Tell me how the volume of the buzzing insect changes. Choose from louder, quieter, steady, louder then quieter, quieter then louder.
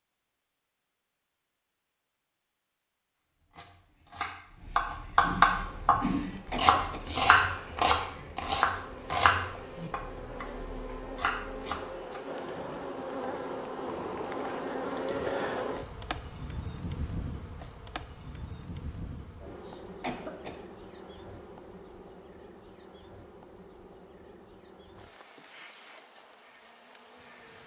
louder then quieter.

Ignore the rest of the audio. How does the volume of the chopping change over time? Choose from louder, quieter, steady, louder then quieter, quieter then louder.
quieter.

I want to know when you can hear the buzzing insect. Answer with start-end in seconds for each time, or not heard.
5.5-27.6.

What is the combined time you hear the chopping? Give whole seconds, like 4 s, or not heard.
9 s.